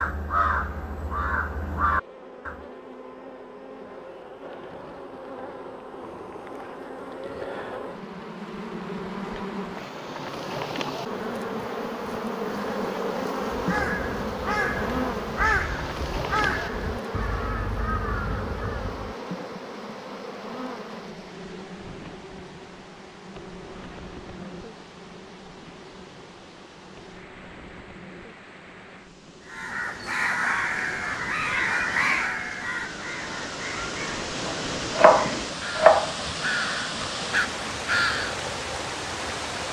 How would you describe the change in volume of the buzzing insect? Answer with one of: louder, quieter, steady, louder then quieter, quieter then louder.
louder then quieter.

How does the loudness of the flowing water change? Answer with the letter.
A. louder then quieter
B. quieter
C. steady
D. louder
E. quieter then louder
D.